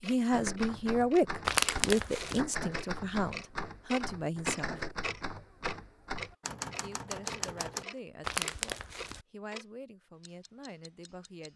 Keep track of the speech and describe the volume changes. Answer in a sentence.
The volume of the speech goes down.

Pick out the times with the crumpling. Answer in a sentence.
You can hear the crumpling from 1.4 to 2.5 s and from 8.2 to 9.2 s.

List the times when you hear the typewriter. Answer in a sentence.
You can hear the typewriter from 0.3 to 7.8 s.